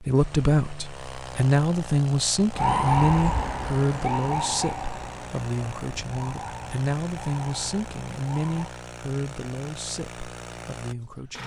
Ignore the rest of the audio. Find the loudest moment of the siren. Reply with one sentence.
The loudest moment of the siren is at 3 seconds.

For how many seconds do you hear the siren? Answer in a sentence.
The siren can be heard for 6 seconds in total.